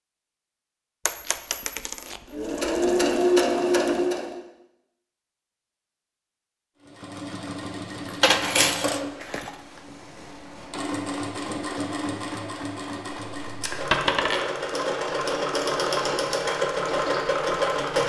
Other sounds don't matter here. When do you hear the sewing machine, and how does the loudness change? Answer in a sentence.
You can hear the sewing machine briefly from 2.3 to 4.4 s; and from 6.8 to 18.0 s, getting louder.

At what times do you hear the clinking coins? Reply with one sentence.
The clinking coins can be heard from 1.1 to 3.1 s, from 8.1 to 9.6 s and from 13.9 to 14.5 s.